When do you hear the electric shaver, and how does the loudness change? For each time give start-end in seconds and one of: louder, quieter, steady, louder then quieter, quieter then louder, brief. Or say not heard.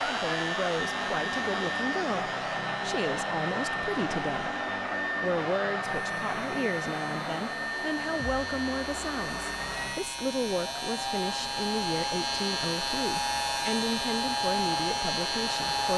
0.0-15.9 quieter then louder.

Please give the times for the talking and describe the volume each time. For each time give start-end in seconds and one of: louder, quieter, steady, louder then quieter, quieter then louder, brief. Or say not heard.
0.0-4.5 steady
5.2-15.9 steady.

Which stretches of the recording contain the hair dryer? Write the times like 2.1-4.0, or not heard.
0.0-15.9.